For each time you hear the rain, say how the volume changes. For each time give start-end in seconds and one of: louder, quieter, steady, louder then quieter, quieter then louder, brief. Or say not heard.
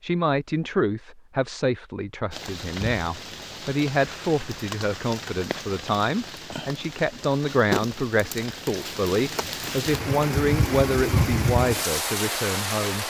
2.3-13.0 louder.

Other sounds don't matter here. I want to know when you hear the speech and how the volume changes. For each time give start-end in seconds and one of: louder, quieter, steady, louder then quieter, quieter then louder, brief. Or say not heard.
0.0-13.0 steady.